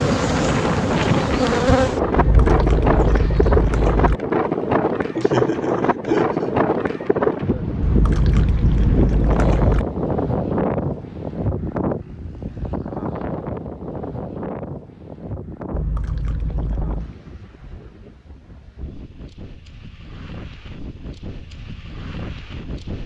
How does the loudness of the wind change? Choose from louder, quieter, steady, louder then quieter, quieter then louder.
quieter.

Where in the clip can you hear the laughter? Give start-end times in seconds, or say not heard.
5.2-6.5.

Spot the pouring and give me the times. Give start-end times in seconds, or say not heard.
2.1-4.2, 7.8-9.8, 15.7-17.1.